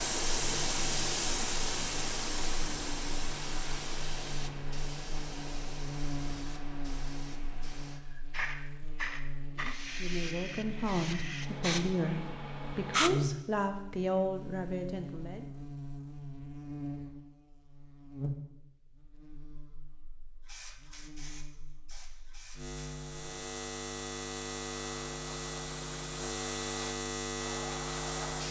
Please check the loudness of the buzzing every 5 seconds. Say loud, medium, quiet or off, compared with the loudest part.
medium, medium, loud, medium, medium, loud.